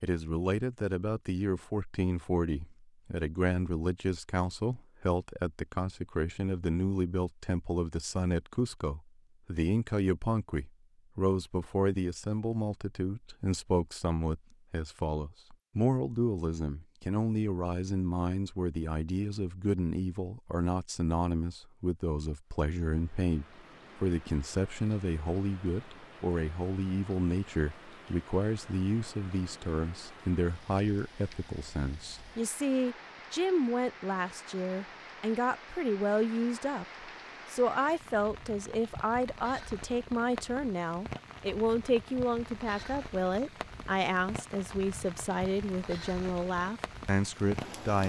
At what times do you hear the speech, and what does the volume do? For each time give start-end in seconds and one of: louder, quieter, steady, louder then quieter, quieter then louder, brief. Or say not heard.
0.0-48.0 steady.